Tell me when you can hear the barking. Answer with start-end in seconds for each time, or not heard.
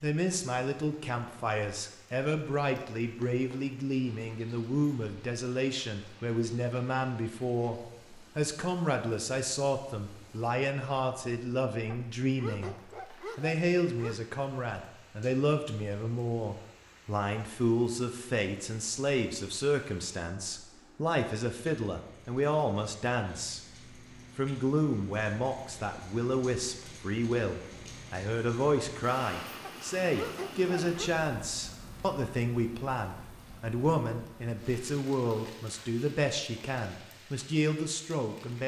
11.9-14.2, 29.6-31.1.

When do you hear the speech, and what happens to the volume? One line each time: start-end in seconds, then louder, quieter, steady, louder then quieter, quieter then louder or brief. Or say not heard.
0.0-23.6 steady
24.4-38.6 steady.